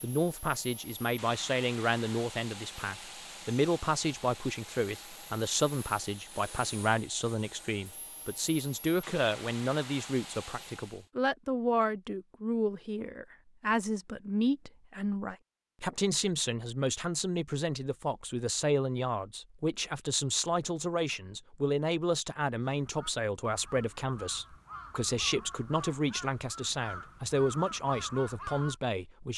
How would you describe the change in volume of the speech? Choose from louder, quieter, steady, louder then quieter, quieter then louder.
steady.